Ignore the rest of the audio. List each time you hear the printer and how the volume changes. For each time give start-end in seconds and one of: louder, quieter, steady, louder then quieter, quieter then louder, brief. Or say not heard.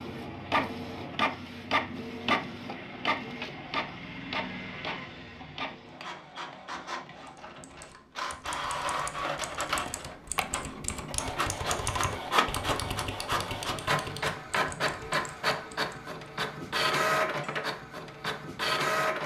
0.0-19.2 quieter then louder.